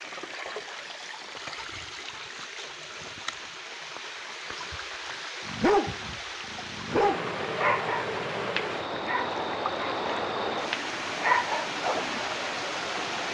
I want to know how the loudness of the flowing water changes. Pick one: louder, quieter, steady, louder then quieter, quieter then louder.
louder.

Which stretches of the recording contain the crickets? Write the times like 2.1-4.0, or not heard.
not heard.